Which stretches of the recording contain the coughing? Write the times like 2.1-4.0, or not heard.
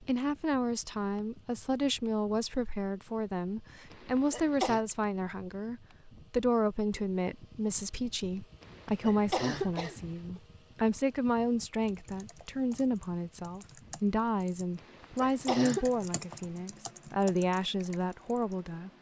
3.9-4.8, 8.6-9.9, 14.8-15.8.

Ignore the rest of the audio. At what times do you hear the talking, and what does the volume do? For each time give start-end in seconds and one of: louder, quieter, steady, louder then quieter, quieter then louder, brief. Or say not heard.
0.0-18.9 steady.